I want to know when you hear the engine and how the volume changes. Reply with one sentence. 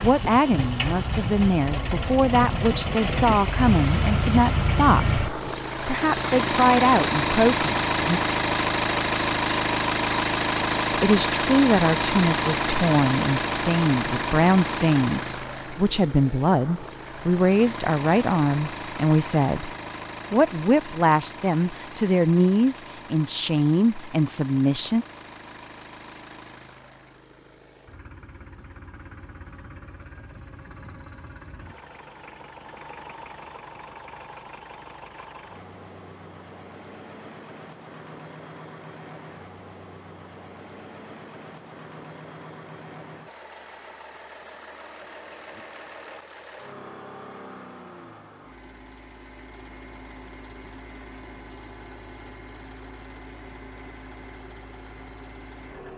The engine can be heard from 0.0 to 55.9 s, getting quieter.